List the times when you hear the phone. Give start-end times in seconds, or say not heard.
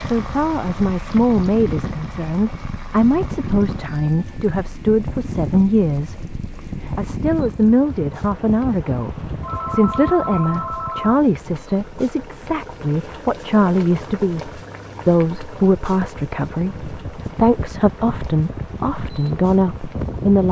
9.4-11.2.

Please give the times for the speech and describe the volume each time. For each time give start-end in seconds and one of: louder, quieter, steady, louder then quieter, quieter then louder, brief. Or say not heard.
0.0-20.4 steady.